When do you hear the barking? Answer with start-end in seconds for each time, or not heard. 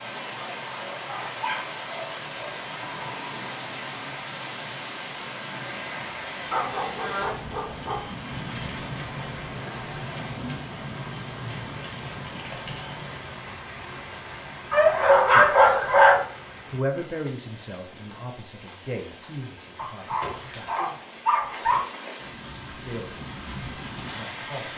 0.3-2.7, 6.5-8.1, 14.7-16.2, 19.8-21.8.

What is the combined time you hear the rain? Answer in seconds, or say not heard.
25 s.